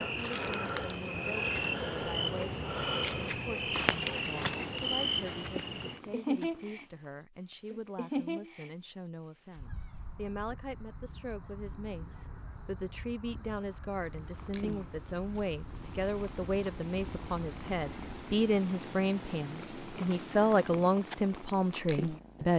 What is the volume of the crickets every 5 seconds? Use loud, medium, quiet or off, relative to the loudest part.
loud, loud, quiet, quiet, off.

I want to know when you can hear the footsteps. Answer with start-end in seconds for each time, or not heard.
not heard.